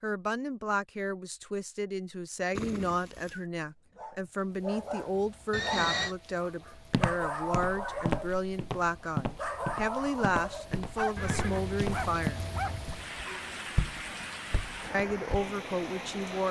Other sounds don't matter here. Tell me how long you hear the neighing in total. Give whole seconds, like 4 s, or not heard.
3 s.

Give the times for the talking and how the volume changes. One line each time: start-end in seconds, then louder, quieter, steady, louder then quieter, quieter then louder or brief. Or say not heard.
0.0-12.4 steady
14.9-16.4 brief.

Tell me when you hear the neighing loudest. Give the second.
6 s.